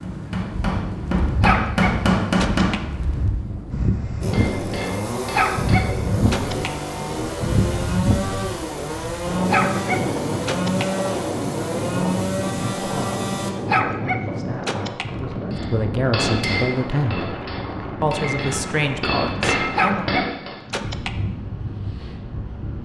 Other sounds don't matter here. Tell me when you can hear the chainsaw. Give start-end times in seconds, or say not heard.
4.2-13.6.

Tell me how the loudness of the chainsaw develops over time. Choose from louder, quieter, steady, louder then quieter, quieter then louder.
steady.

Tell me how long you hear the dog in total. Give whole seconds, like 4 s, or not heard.
7 s.